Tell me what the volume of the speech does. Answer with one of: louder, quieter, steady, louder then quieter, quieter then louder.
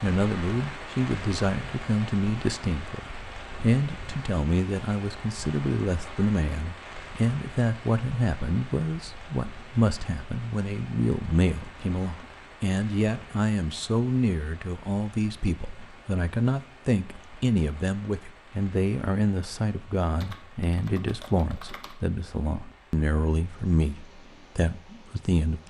steady.